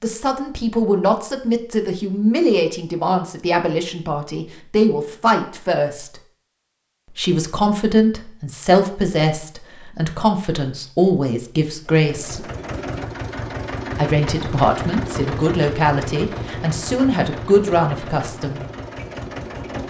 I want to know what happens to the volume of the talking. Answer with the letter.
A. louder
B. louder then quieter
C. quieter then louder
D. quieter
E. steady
E.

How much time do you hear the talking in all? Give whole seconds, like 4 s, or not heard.
16 s.